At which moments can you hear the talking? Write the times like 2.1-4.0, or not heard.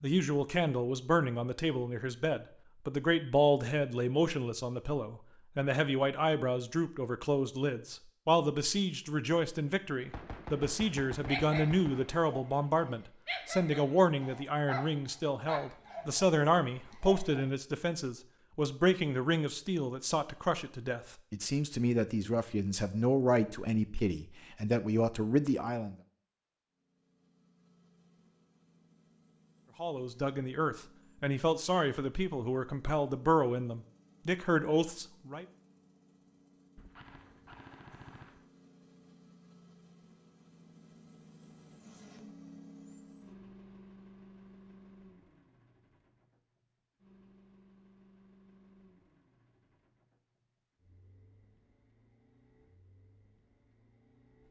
0.0-25.9, 29.8-35.5.